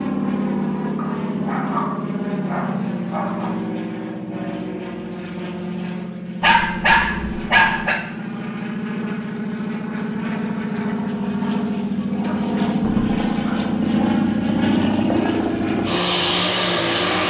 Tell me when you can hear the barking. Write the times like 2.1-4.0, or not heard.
0.9-3.5, 6.4-8.0, 12.2-13.7.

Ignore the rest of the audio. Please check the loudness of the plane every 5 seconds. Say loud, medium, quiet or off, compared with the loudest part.
medium, medium, loud, loud.